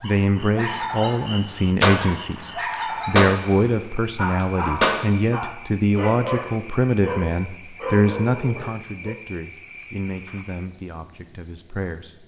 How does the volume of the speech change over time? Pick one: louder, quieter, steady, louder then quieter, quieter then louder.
quieter.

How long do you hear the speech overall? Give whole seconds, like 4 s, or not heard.
12 s.